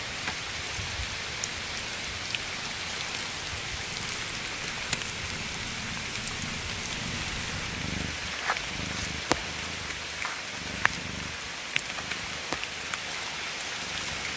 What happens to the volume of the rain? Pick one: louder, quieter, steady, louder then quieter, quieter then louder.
steady.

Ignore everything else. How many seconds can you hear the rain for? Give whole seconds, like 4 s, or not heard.
14 s.